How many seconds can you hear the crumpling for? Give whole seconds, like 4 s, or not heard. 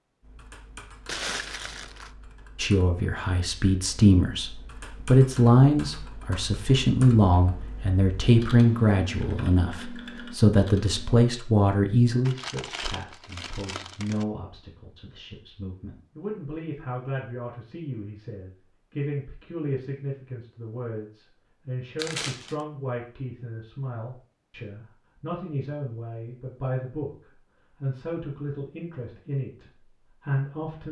4 s.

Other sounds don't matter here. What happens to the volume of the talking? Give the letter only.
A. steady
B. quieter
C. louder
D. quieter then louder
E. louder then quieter
B.